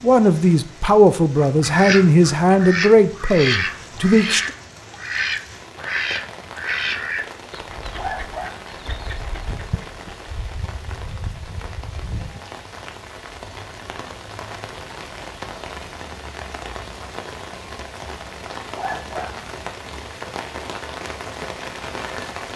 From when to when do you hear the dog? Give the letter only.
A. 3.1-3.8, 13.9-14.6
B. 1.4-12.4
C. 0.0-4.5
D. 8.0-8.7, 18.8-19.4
D.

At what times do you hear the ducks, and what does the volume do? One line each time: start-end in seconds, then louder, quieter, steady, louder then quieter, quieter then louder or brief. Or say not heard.
1.4-12.4 quieter.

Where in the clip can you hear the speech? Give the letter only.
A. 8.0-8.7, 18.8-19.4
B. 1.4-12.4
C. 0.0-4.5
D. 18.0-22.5
C.